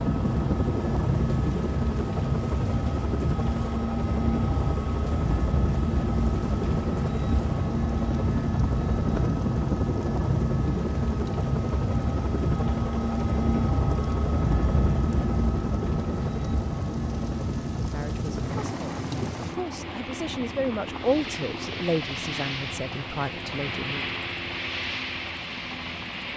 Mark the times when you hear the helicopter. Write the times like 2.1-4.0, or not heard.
0.0-26.3.